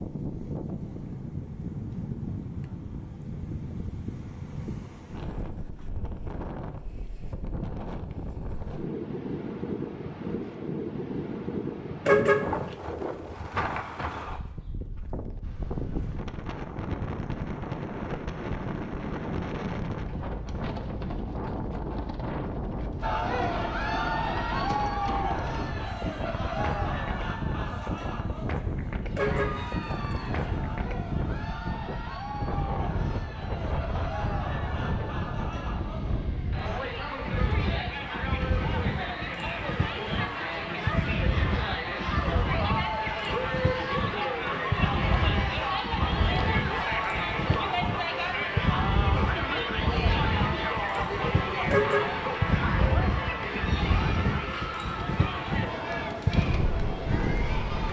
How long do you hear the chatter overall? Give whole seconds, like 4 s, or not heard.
35 s.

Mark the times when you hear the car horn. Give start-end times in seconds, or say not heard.
12.1-12.8, 29.1-30.4, 51.7-52.4.